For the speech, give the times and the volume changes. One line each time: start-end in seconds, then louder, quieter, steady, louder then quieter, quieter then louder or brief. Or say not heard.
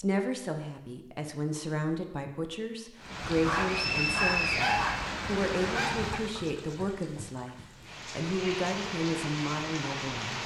0.0-10.4 steady.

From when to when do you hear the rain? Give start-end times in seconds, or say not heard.
3.0-10.4.